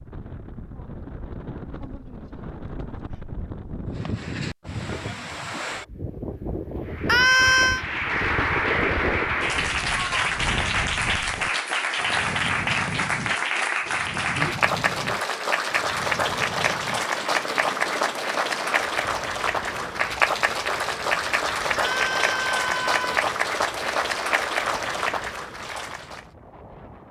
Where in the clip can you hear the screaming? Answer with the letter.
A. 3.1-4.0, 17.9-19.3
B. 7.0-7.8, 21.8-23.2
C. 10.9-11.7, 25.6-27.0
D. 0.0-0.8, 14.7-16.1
B.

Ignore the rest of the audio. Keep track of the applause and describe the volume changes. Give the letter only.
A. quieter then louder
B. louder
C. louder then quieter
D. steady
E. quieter
D.